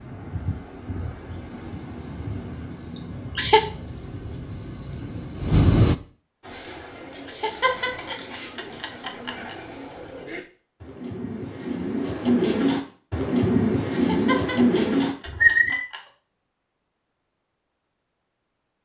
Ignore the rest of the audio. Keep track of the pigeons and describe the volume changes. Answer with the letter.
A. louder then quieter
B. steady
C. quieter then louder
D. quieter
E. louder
E.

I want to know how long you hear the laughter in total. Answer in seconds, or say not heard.
5 s.